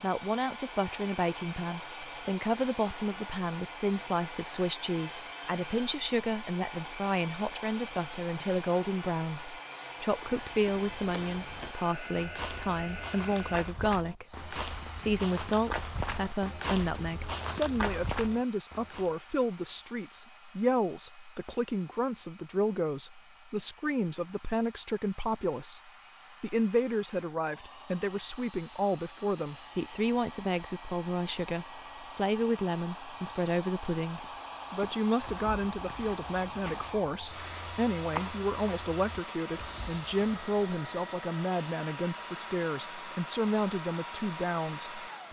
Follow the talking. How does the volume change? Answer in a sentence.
The volume of the talking stays about the same.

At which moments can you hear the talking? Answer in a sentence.
The talking can be heard from 0.0 to 45.2 s.